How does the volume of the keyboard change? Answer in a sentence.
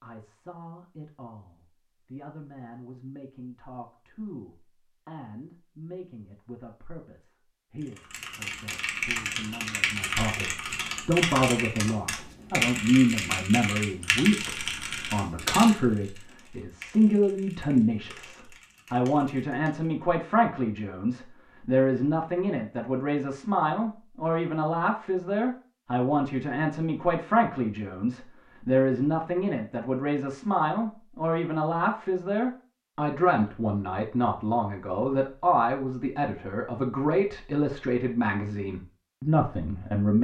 The volume of the keyboard goes down.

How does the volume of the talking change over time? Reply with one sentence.
The volume of the talking goes up.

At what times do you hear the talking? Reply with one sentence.
The talking can be heard from 0.0 to 40.2 s.